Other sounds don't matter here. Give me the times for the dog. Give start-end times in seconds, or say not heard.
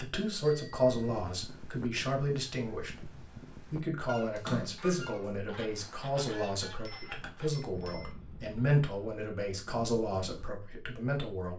not heard.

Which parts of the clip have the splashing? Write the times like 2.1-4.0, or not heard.
4.3-5.3.